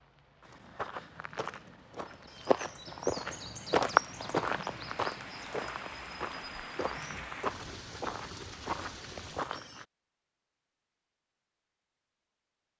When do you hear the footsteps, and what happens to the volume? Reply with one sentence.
The footsteps can be heard from 0.4 to 9.8 s, getting louder then quieter.